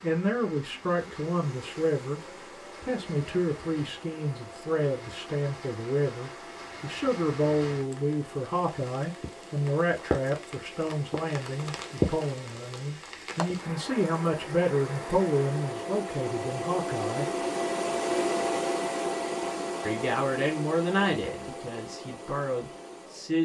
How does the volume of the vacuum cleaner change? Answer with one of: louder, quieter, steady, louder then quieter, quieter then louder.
louder.